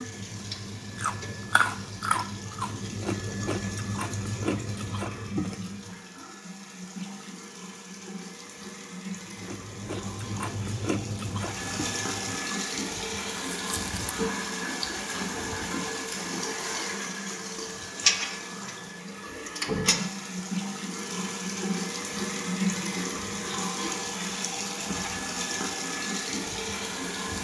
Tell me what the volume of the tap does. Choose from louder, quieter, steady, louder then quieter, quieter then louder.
louder.